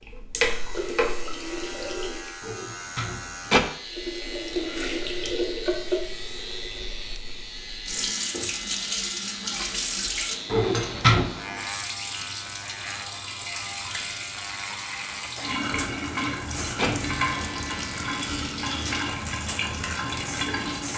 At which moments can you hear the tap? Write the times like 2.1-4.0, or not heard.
0.0-2.4, 3.8-20.9.